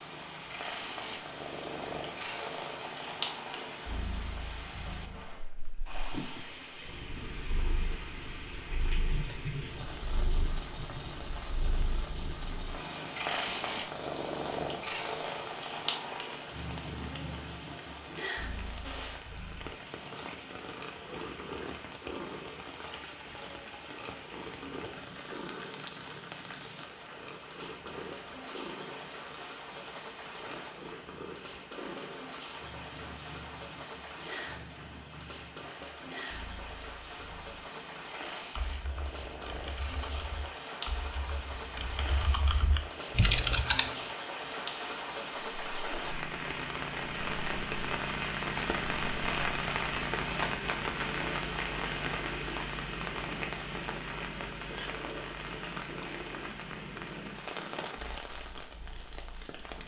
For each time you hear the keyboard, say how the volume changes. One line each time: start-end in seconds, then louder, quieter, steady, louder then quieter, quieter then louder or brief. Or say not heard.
38.5-43.9 louder.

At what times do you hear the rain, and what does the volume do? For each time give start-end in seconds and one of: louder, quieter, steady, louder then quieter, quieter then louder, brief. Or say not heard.
0.0-59.8 louder.